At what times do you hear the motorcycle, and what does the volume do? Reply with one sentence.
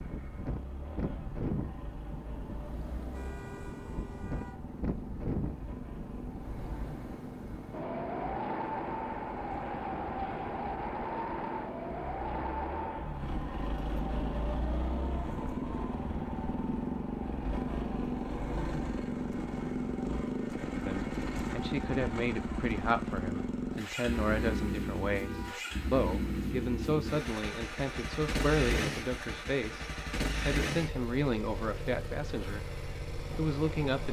The motorcycle can be heard from 0.0 to 34.0 s, getting louder.